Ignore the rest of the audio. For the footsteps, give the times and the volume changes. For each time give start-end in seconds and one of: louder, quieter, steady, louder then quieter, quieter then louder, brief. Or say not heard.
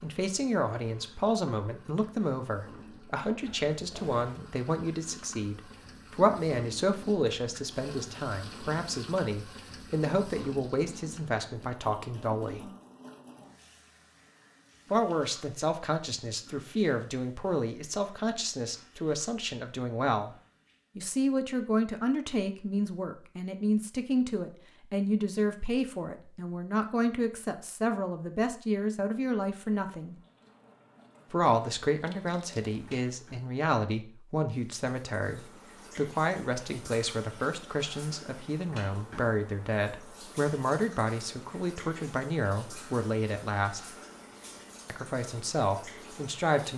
not heard.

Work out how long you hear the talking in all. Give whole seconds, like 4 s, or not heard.
42 s.